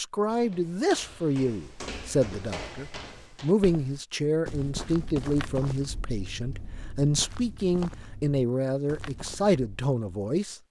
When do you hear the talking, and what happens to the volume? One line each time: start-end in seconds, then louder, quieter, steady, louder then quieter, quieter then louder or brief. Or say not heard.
0.0-10.6 steady.